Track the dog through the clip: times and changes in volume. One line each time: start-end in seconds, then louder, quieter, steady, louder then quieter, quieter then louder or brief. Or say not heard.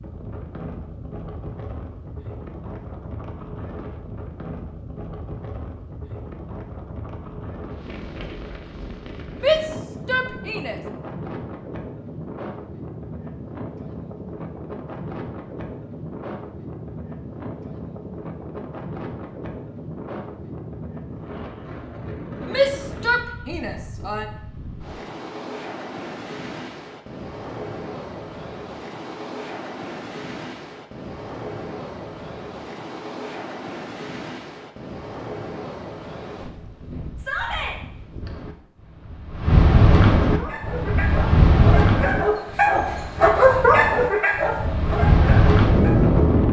40.2-46.0 louder then quieter.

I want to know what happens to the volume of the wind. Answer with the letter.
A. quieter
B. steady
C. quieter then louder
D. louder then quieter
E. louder
E.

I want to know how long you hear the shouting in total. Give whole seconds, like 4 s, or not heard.
4 s.